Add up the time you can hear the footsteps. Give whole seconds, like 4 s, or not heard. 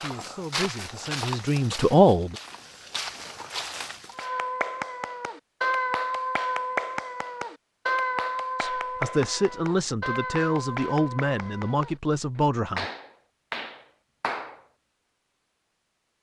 4 s.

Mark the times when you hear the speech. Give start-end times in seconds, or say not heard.
0.0-2.4, 8.6-12.8.